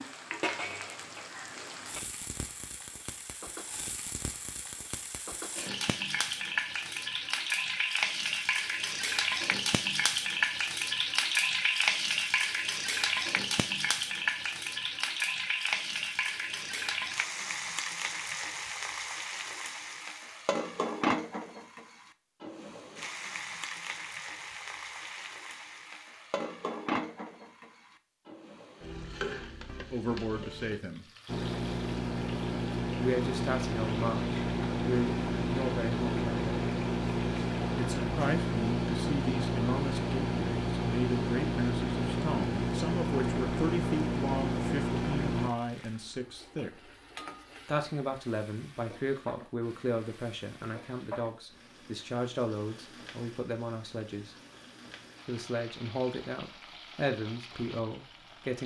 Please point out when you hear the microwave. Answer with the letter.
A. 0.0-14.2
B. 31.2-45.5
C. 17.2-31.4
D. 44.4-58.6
B.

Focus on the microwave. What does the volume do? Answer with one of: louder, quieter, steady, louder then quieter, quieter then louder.
steady.